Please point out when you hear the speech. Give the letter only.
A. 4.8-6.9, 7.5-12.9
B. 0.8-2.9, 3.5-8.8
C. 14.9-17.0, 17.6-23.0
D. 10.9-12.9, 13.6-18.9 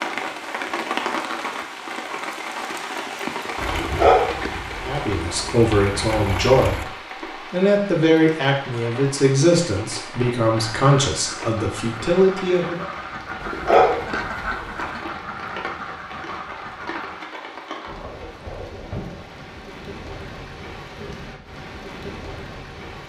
A.